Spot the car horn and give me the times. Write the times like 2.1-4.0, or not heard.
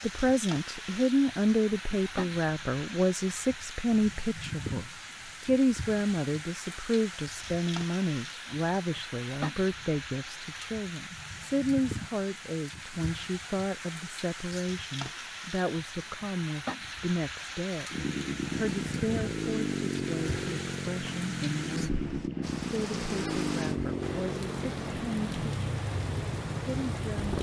not heard.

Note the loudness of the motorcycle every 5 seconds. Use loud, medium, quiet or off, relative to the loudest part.
off, off, off, loud, loud, loud.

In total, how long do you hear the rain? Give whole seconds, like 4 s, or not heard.
27 s.